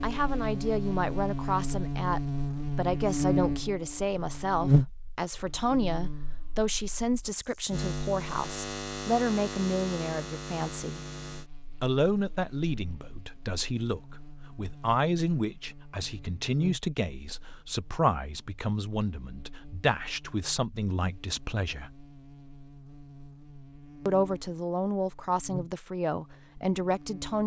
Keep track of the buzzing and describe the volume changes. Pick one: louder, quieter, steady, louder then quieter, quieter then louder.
quieter.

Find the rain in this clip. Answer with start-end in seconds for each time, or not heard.
not heard.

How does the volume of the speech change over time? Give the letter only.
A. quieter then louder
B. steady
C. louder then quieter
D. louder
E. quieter
B.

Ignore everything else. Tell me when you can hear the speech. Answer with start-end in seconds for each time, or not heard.
0.0-11.0, 11.8-21.9, 24.1-27.4.